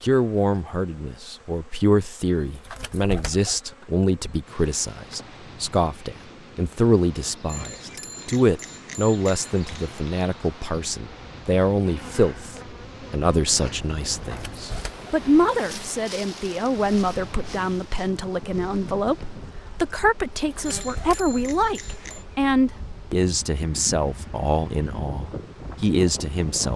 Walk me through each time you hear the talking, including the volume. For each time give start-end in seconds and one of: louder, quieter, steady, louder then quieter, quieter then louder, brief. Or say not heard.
0.0-26.7 steady.